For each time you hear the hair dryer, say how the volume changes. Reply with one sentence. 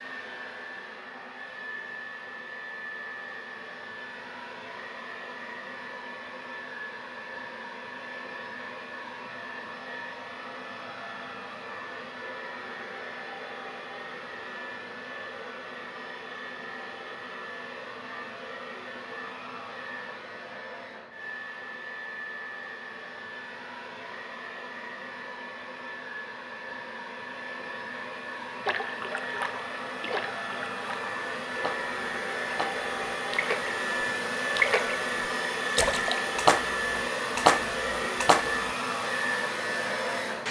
You can hear the hair dryer from 0.0 to 40.4 s, getting louder.